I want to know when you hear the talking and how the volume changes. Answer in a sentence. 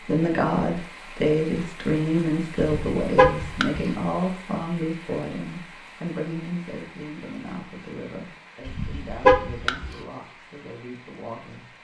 The talking can be heard from 0.0 to 11.7 s, getting quieter.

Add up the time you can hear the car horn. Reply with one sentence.
The car horn can be heard for 3 seconds in total.